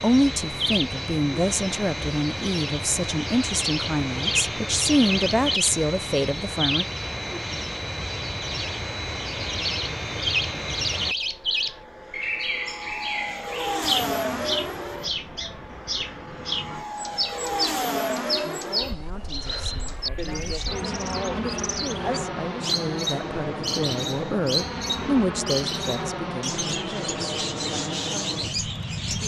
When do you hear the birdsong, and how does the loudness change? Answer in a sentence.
You can hear the birdsong from 0.0 to 29.2 s, at a steady volume.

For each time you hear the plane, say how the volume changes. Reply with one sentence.
The plane can be heard from 0.0 to 29.2 s, at a steady volume.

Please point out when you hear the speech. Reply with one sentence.
You can hear the speech from 0.0 to 6.8 s and from 18.4 to 29.2 s.